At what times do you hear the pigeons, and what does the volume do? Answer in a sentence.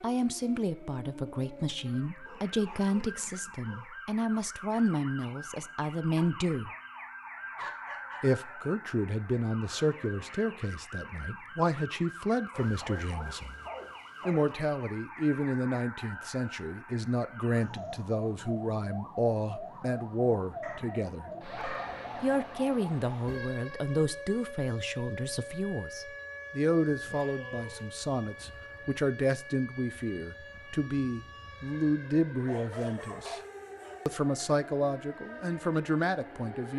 The pigeons can't be heard in this clip.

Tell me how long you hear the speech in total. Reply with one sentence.
You can hear the speech for 33 seconds altogether.